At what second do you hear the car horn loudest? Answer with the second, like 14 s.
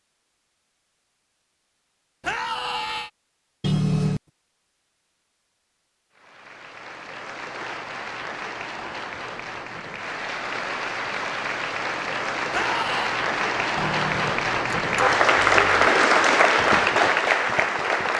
4 s.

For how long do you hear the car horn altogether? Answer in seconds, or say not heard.
3 s.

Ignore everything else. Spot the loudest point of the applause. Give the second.
16 s.